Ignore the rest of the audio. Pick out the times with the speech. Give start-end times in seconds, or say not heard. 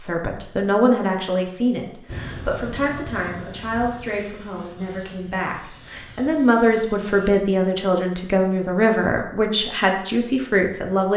0.0-11.1.